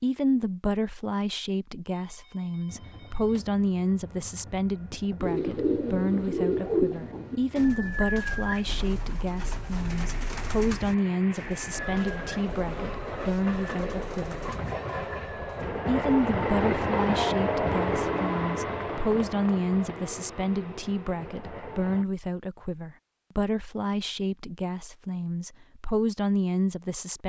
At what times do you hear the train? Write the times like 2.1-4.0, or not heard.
2.6-22.1.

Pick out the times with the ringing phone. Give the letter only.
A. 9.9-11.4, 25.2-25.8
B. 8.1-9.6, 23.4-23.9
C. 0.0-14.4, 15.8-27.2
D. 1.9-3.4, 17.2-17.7
D.